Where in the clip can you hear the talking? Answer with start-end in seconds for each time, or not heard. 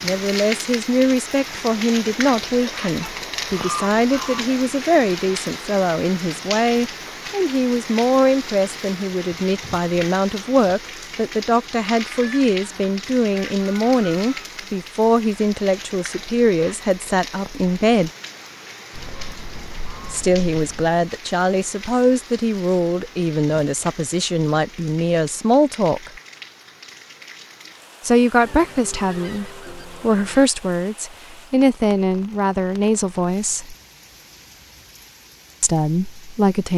0.0-18.1, 20.1-26.1, 28.0-33.8, 35.6-36.7.